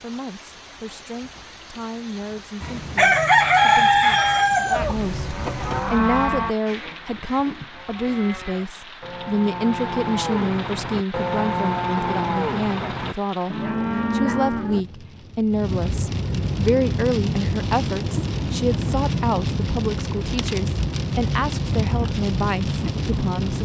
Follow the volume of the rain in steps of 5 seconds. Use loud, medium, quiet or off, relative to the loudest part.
quiet, quiet, quiet, loud, loud.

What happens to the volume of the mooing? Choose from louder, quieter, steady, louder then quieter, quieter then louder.
quieter then louder.